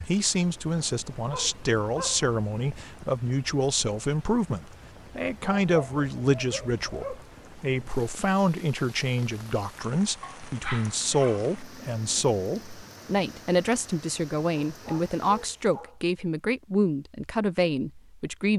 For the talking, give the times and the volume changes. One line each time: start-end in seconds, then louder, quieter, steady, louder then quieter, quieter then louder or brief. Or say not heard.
0.0-18.5 steady.